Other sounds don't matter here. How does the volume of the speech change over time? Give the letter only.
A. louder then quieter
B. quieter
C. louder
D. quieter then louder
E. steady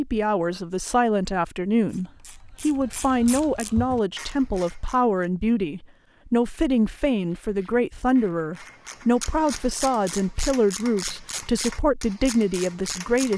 E.